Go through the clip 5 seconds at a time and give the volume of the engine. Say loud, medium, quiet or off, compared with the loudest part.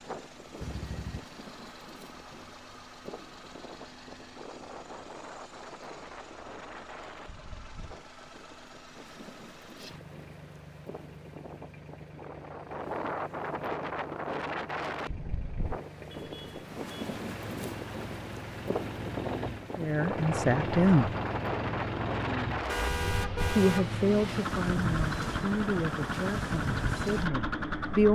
quiet, quiet, quiet, medium, loud, loud.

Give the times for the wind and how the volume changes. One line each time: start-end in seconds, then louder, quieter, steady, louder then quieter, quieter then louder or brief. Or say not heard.
0.0-28.1 louder.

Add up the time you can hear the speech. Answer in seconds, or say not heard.
6 s.